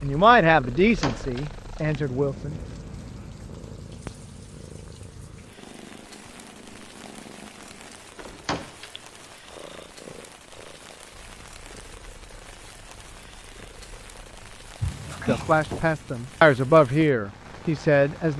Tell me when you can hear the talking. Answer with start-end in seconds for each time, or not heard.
0.0-2.5, 15.2-18.3.